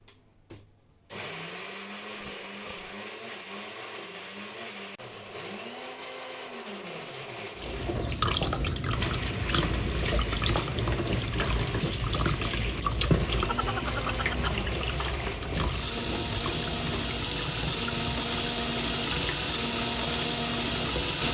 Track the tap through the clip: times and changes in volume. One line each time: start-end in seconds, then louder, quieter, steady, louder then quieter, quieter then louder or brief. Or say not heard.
7.5-21.2 quieter.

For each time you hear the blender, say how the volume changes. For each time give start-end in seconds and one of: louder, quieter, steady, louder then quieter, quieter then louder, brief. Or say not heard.
0.0-21.2 louder.